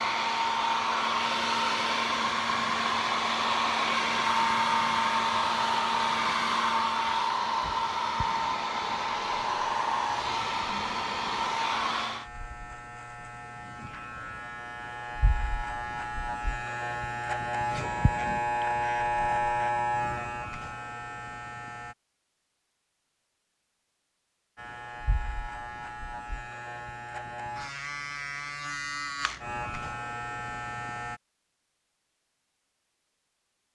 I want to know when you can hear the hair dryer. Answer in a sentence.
You can hear the hair dryer from 0.0 to 12.2 s.